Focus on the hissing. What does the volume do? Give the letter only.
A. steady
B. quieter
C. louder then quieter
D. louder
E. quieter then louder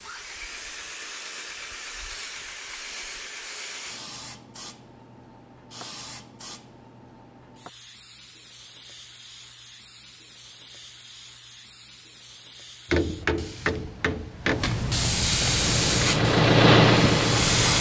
E.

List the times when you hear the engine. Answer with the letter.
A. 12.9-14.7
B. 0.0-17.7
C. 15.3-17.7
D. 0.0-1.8
C.